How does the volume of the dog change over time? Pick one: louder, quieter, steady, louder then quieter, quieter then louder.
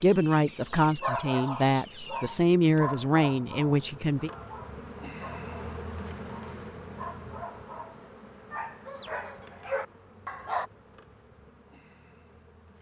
quieter then louder.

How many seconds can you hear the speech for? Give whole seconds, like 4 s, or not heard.
4 s.